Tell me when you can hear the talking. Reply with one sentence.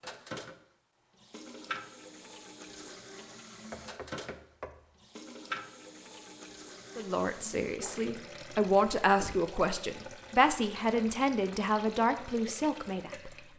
The talking can be heard from 7.0 to 13.3 s.